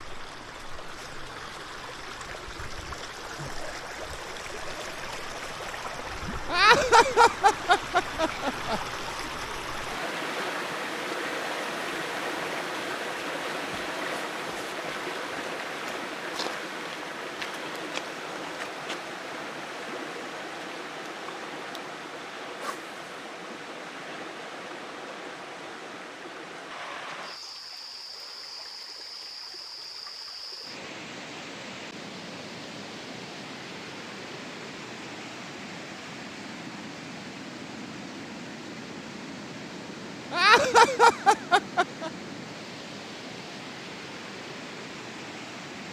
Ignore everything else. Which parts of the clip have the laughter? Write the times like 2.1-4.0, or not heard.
6.5-8.8, 40.3-42.1.